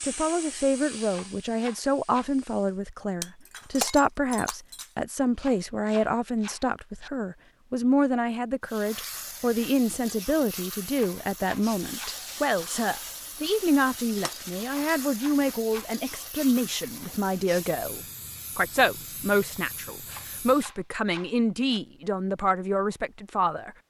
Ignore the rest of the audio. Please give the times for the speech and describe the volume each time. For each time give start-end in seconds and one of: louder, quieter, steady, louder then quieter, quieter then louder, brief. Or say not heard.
0.0-23.7 steady.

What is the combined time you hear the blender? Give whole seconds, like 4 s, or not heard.
not heard.